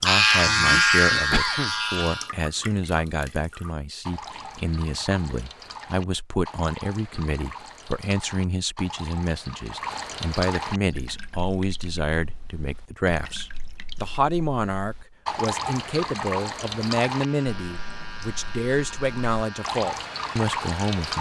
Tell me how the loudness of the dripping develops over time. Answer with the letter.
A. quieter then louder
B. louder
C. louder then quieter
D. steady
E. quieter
B.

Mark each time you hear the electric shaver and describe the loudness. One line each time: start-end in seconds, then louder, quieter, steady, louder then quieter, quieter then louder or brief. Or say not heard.
0.0-2.3 brief
17.1-21.1 steady.